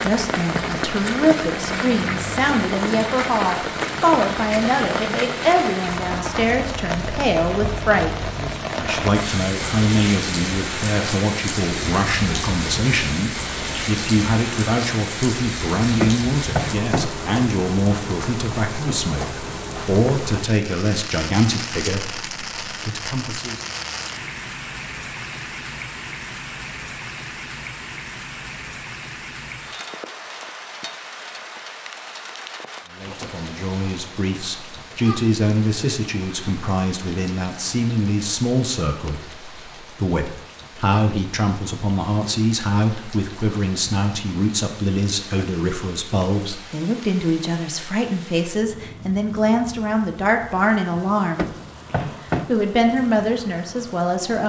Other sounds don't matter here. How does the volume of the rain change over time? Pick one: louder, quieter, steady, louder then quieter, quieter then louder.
quieter.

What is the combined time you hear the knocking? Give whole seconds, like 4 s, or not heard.
2 s.